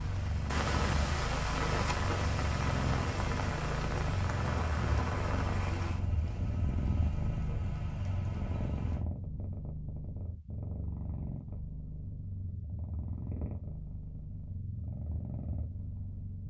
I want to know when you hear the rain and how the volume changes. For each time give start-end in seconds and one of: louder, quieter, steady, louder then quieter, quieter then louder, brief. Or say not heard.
0.0-9.1 quieter.